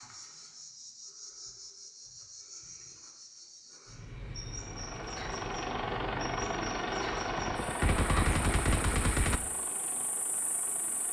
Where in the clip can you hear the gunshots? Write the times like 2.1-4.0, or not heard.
7.3-9.4.